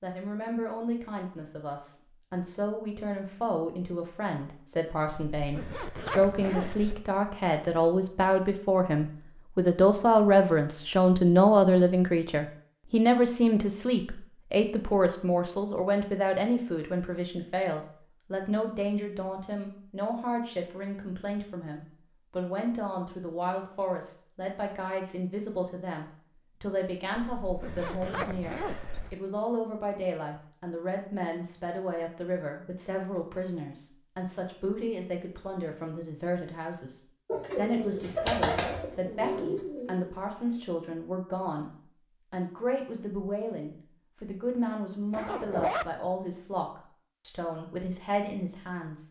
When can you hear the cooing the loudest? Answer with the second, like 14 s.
38 s.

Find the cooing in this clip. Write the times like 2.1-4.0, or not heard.
37.2-40.8.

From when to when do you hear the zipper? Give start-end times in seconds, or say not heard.
5.3-7.0, 27.1-29.1, 45.1-45.9.